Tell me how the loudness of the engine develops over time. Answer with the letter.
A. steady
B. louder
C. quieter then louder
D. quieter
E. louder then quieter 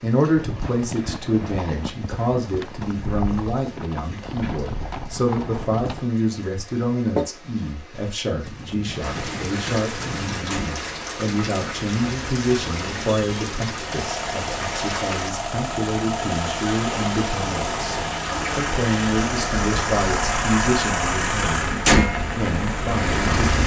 B.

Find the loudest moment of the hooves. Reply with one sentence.
The loudest moment of the hooves is at 7 seconds.